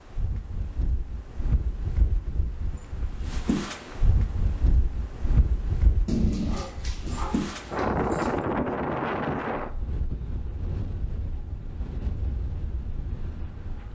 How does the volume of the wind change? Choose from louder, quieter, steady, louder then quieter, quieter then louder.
louder then quieter.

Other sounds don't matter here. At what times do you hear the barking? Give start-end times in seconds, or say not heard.
6.0-8.4.